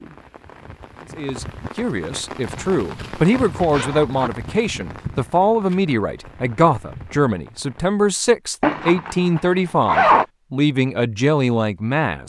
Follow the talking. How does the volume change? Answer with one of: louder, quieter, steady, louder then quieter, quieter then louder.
steady.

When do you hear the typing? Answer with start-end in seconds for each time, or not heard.
not heard.